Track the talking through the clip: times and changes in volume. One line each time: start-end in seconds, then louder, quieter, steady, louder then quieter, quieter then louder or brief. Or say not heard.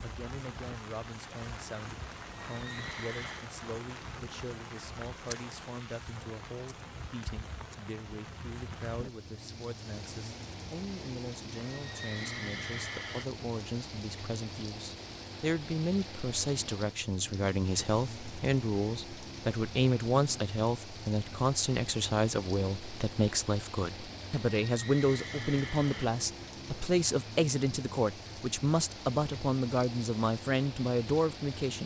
0.0-31.8 louder.